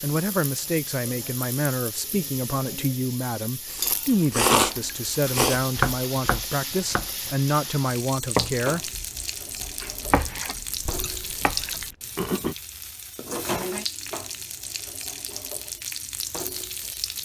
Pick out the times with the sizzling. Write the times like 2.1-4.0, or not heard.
0.0-17.2.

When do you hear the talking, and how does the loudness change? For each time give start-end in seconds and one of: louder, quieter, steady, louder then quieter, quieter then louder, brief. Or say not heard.
0.0-8.9 steady.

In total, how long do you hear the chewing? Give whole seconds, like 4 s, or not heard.
4 s.